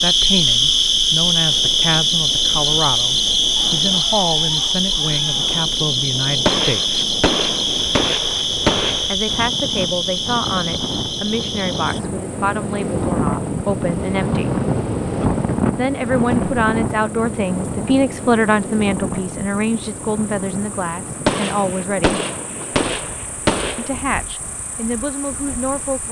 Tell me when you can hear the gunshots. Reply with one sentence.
You can hear the gunshots from 6.5 to 9.2 s and from 21.2 to 23.9 s.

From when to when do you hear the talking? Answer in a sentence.
You can hear the talking from 0.0 to 7.0 s, from 9.1 to 14.5 s, from 15.8 to 22.2 s and from 23.8 to 26.0 s.